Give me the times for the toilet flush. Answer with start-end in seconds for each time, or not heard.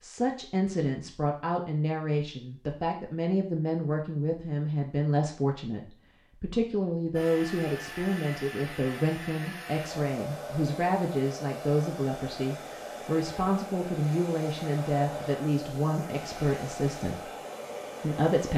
not heard.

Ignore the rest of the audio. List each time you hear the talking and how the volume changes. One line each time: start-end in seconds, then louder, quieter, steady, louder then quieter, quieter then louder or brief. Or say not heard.
0.0-17.3 steady
18.0-18.5 brief.